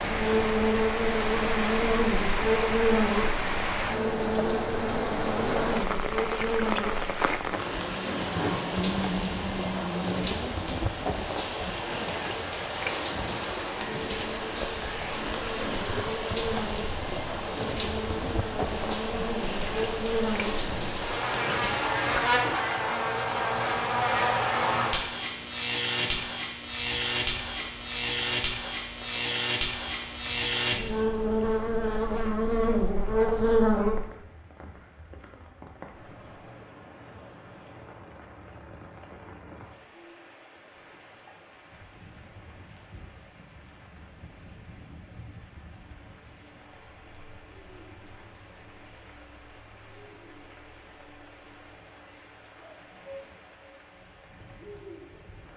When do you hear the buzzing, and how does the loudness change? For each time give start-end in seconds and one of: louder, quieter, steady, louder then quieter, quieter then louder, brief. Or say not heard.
0.0-34.1 quieter then louder.